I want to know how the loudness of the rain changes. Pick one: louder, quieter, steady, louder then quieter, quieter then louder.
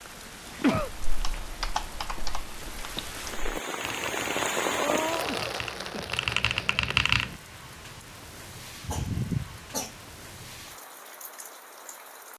louder then quieter.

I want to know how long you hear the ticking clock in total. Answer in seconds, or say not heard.
not heard.